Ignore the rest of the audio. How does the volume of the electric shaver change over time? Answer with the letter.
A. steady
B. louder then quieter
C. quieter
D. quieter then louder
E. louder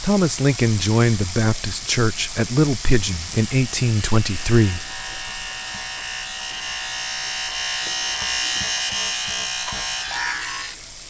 E.